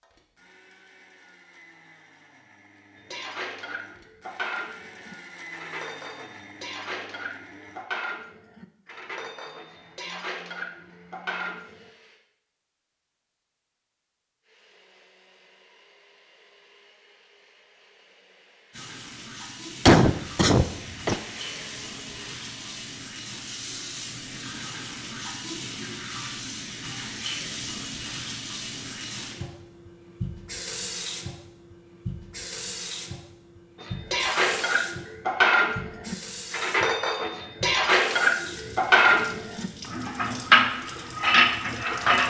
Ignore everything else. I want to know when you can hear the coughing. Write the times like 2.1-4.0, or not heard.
19.9-21.1.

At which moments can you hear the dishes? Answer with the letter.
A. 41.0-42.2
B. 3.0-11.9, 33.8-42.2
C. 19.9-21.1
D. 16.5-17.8
B.